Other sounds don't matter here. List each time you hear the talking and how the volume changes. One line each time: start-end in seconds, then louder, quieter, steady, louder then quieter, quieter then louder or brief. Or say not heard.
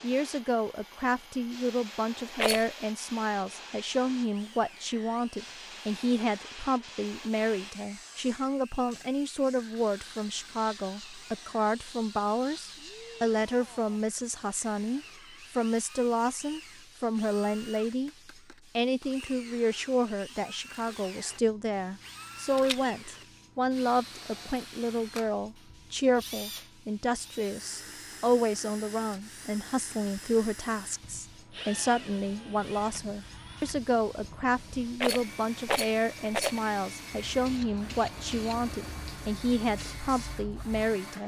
0.0-18.1 steady
18.8-41.2 steady.